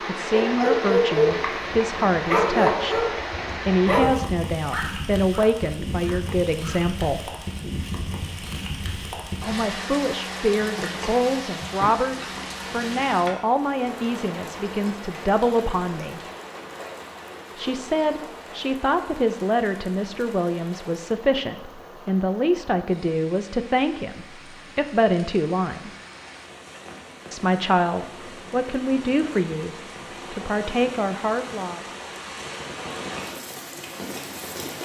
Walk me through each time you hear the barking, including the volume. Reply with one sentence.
The barking can be heard from 0.3 to 6.8 s, getting quieter.